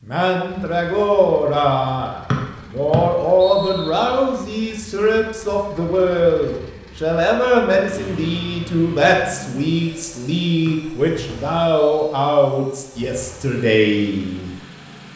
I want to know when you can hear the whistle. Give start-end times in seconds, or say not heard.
2.3-4.0, 10.7-12.2.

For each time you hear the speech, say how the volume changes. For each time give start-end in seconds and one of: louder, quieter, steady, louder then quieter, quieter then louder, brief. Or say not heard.
0.0-14.5 steady.